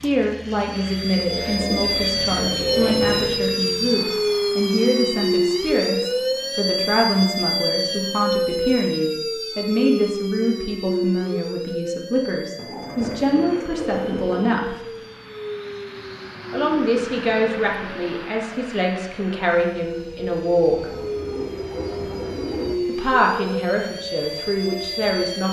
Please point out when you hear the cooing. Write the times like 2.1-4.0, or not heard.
1.2-3.3, 12.6-14.6, 20.8-22.8.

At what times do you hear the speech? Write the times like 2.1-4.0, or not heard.
0.0-14.8, 16.5-20.9, 22.9-25.4.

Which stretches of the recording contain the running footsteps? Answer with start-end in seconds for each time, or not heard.
not heard.